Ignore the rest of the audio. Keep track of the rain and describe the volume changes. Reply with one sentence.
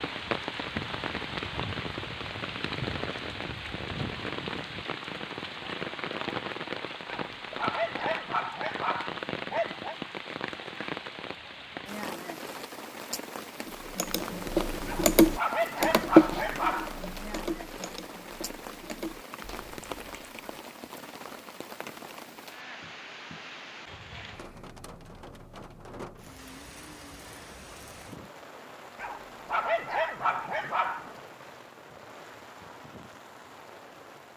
The volume of the rain goes down.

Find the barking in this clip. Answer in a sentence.
The barking can be heard from 7.0 to 9.9 s, from 14.8 to 17.1 s and from 28.9 to 31.1 s.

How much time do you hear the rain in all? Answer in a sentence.
The rain can be heard for 34 seconds in total.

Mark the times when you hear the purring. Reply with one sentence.
The purring can't be heard in this clip.